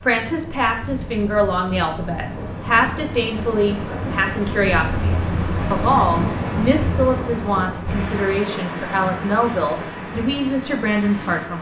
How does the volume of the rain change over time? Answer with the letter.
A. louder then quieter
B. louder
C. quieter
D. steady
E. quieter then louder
A.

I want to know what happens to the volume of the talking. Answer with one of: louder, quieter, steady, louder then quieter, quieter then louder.
steady.